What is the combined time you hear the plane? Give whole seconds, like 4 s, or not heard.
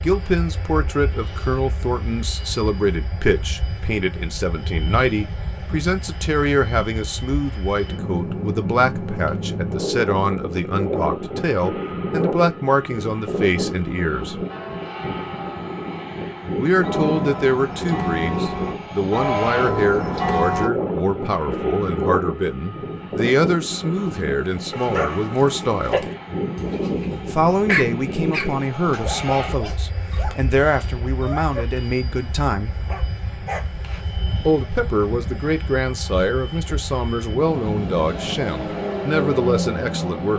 40 s.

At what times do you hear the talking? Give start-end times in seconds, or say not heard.
0.0-14.3, 16.6-26.1, 27.2-32.8, 34.5-40.3.